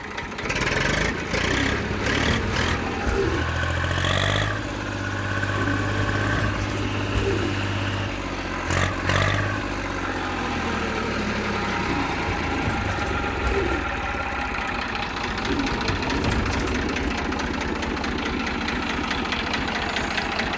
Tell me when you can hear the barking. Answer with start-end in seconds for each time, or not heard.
not heard.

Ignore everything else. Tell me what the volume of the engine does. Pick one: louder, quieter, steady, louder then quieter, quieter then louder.
steady.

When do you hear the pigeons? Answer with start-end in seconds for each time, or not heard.
1.4-3.5, 5.5-7.5, 11.8-13.8, 15.4-17.1.